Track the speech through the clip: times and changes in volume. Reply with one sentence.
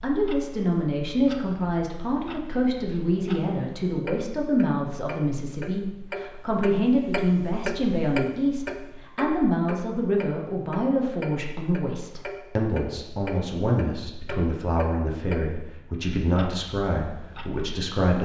You can hear the speech from 0.0 to 18.1 s, at a steady volume.